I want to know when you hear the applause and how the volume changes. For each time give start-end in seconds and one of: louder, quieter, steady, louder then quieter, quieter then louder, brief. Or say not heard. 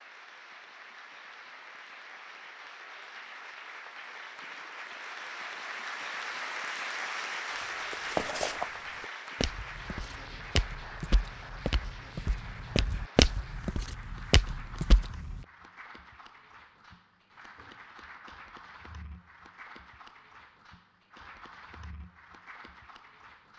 0.0-23.5 louder then quieter.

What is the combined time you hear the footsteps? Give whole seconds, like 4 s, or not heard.
8 s.